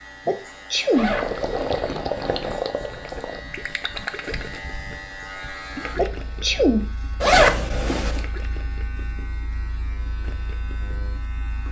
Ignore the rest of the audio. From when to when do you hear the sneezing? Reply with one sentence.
You can hear the sneezing from 0.2 to 1.1 s and from 6.0 to 6.8 s.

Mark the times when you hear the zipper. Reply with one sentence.
The zipper can be heard from 0.9 to 2.6 s and from 7.2 to 8.2 s.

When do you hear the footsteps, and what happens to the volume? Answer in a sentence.
The footsteps can't be heard in this clip.